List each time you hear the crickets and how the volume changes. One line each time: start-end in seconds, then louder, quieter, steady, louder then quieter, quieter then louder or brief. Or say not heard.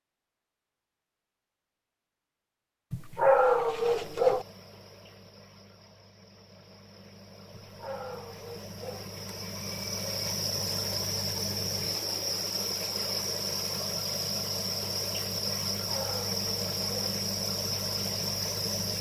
3.6-18.9 louder.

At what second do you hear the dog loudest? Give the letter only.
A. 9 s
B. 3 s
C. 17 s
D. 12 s
B.